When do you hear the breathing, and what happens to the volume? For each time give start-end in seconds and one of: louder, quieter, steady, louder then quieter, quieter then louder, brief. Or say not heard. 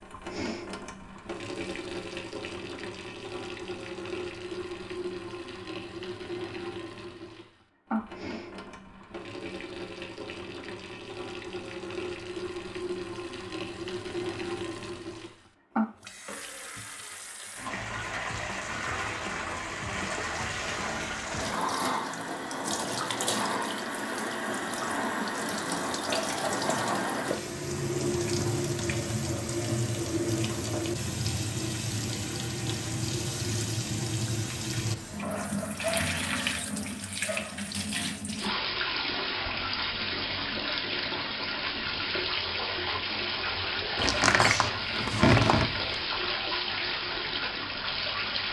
not heard.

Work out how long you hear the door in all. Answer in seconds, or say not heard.
2 s.